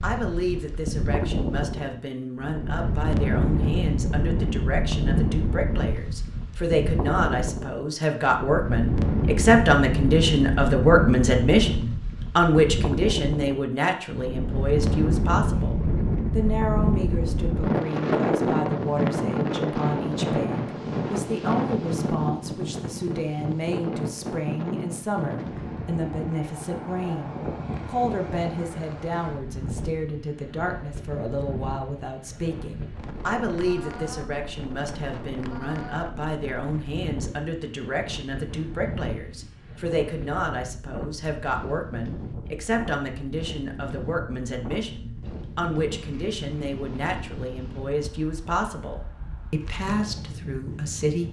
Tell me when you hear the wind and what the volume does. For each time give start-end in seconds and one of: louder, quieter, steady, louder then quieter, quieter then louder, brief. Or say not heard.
0.0-51.2 quieter.